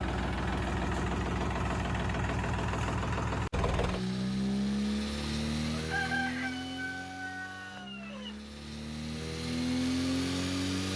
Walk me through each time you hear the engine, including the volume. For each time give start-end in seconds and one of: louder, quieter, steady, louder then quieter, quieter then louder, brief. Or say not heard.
0.0-10.9 quieter then louder.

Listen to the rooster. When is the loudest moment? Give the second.
6 s.